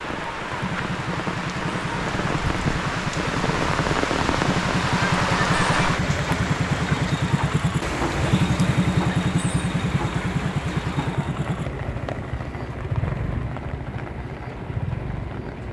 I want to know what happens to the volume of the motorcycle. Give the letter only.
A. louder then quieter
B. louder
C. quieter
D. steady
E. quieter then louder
A.